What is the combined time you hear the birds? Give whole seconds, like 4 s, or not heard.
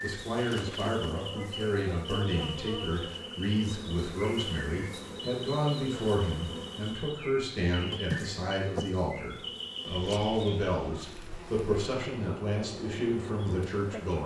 11 s.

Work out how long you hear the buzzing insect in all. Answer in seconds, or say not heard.
14 s.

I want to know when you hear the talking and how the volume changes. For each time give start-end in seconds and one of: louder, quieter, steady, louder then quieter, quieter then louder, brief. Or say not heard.
0.0-14.2 steady.